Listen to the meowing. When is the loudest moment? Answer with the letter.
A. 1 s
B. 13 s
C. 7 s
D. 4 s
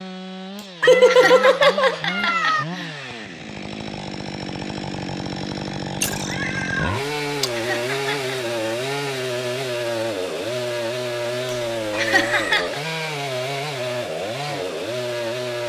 A.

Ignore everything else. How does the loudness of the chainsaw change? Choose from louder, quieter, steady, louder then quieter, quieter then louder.
louder.